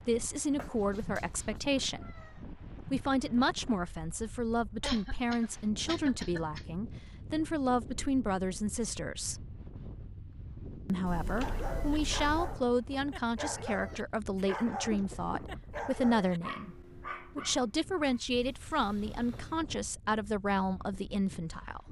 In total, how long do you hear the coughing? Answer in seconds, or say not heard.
3 s.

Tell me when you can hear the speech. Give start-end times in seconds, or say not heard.
0.1-9.4, 10.8-21.8.